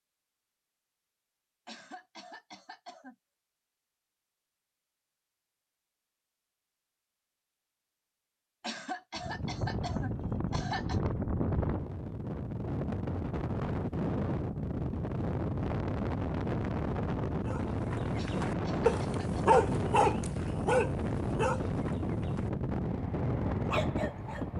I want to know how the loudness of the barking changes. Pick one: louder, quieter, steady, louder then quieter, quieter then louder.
quieter then louder.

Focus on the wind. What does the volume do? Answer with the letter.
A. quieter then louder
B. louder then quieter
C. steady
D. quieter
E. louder
C.